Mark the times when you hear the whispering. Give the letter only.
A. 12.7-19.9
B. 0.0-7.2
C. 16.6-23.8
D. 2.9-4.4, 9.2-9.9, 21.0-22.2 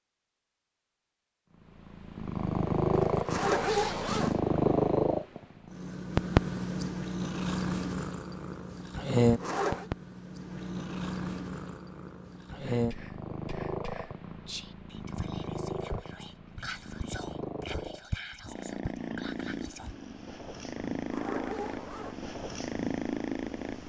A.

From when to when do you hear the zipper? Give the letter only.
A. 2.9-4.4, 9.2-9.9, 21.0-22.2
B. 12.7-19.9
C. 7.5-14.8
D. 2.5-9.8
A.